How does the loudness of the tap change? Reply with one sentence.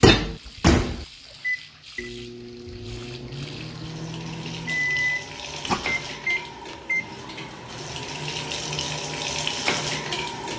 The volume of the tap goes up.